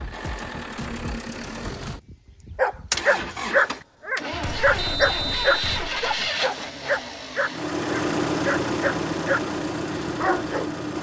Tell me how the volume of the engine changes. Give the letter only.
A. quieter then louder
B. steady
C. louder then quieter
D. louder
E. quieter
D.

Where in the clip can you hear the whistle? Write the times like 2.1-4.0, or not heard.
4.8-5.8.